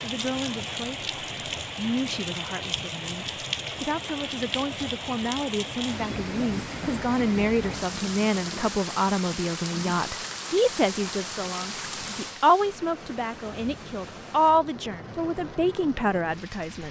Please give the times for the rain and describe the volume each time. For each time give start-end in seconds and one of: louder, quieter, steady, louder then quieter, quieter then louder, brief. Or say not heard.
0.0-16.8 quieter.